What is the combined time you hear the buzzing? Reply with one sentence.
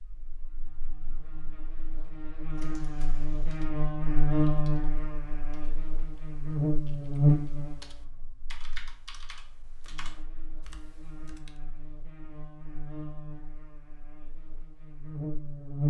The buzzing can be heard for 16 seconds in total.